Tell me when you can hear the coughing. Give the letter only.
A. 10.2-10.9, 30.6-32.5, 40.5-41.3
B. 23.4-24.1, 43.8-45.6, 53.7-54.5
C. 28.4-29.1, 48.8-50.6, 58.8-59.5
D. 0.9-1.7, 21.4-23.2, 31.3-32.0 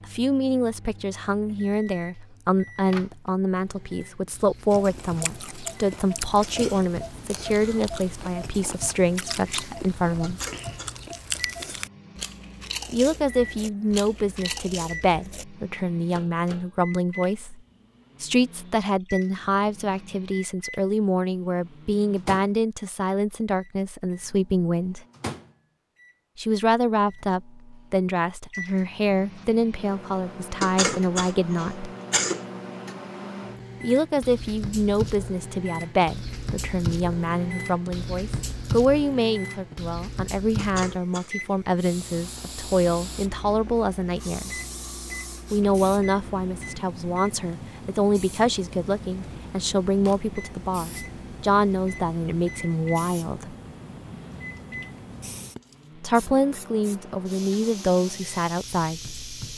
A.